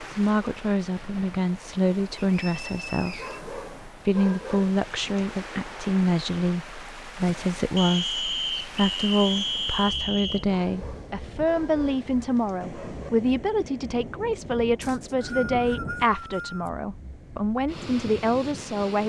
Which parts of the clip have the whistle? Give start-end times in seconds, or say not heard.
2.4-3.4, 7.8-10.4, 14.8-16.7.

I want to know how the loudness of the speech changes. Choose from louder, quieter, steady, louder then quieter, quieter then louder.
steady.